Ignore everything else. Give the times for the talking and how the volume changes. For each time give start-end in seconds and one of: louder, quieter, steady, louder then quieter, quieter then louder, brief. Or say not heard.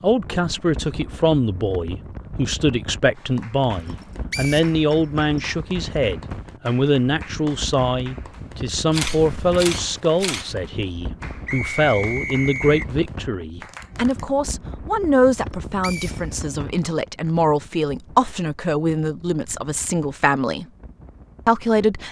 0.0-20.6 steady
21.4-22.0 brief.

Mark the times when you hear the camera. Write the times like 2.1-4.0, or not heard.
8.9-10.5.